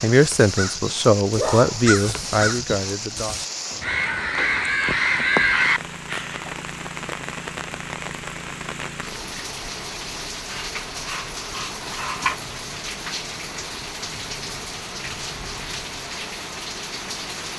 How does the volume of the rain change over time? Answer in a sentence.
The volume of the rain stays about the same.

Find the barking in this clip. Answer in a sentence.
You can hear the barking from 1.4 to 1.9 s and from 10.5 to 12.3 s.